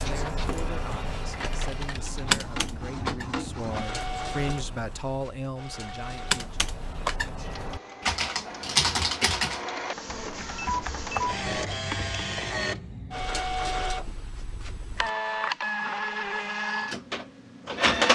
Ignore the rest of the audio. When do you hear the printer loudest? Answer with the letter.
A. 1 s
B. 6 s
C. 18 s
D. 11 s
C.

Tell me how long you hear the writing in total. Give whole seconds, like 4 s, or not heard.
not heard.